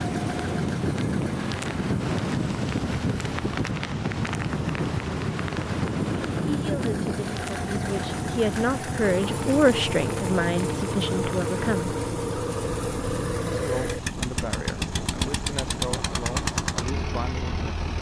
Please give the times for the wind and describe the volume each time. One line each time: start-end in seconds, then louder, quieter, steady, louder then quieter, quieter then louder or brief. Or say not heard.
0.0-17.9 quieter.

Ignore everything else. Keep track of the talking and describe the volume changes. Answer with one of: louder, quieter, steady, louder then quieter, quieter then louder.
louder then quieter.